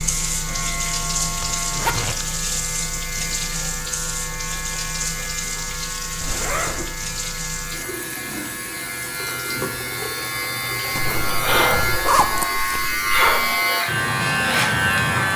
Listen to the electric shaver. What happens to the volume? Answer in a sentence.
The volume of the electric shaver goes up.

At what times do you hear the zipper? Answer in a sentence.
The zipper can be heard from 1.4 to 2.2 s, from 6.2 to 6.9 s and from 10.9 to 13.6 s.